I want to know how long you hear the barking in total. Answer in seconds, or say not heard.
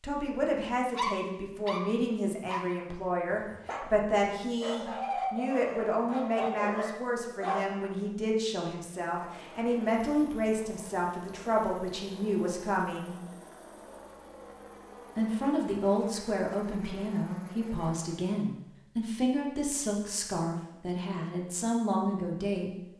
7 s.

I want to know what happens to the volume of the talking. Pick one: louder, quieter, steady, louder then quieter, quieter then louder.
steady.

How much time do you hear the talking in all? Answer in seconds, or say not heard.
21 s.